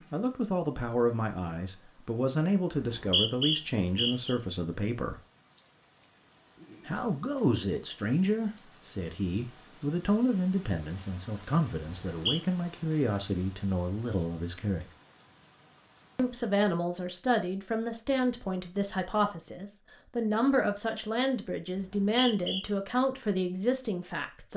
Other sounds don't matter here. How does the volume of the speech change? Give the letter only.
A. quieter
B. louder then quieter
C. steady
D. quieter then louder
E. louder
C.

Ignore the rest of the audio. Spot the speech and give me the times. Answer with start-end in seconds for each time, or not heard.
0.1-5.2, 6.8-14.8, 16.1-24.5.